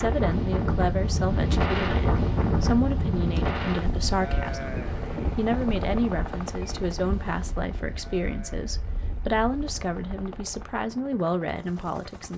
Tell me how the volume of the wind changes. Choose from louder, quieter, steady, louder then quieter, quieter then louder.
quieter.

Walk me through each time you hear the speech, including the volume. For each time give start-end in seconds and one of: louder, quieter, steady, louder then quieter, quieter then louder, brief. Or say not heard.
0.0-12.3 steady.